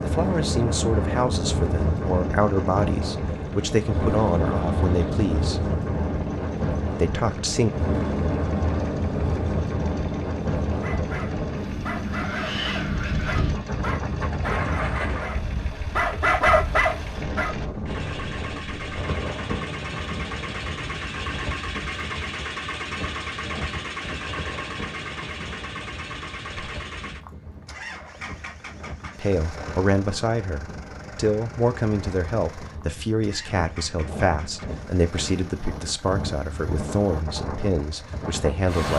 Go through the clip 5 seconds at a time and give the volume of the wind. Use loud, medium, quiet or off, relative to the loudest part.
loud, loud, loud, medium, medium, quiet, quiet, medium.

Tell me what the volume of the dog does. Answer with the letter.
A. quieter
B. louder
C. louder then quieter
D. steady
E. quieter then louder
B.